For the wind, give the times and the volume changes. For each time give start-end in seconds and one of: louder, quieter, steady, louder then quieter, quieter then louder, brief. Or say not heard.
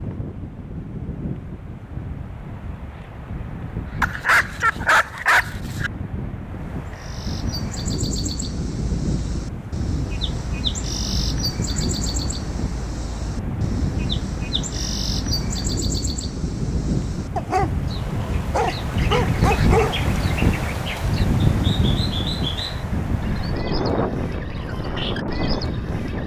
0.0-26.2 louder.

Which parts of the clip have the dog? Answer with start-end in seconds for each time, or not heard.
4.0-5.9, 17.4-19.9.